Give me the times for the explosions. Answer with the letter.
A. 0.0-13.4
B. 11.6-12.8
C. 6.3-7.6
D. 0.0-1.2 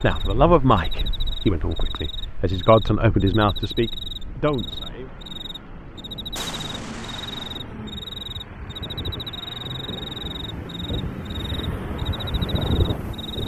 C.